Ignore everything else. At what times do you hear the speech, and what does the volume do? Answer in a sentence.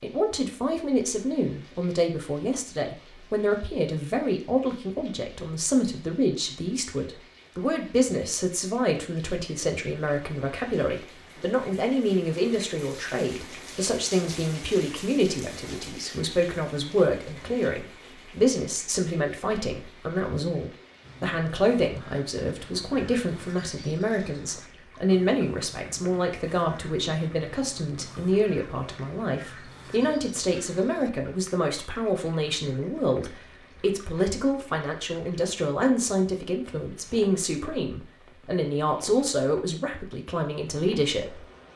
The speech can be heard from 0.0 to 41.5 s, at a steady volume.